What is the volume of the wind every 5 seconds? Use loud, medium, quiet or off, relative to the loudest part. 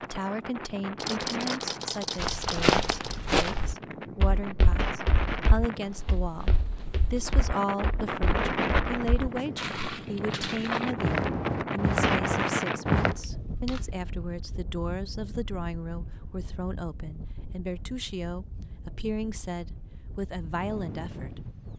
medium, loud, loud, quiet, medium.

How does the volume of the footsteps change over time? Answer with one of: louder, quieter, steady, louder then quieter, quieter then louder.
quieter then louder.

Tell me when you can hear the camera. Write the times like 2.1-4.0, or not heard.
0.9-3.2, 13.2-13.8.